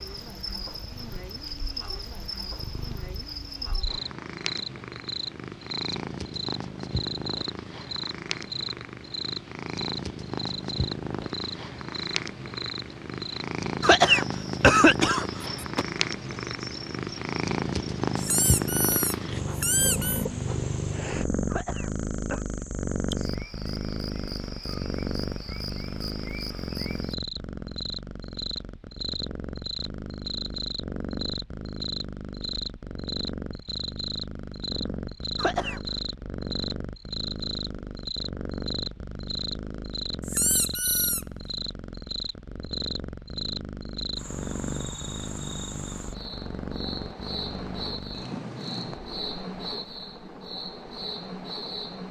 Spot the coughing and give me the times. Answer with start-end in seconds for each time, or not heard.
13.8-15.8, 21.4-22.4, 35.4-35.8.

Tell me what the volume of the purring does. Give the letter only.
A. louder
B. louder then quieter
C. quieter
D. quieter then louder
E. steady
B.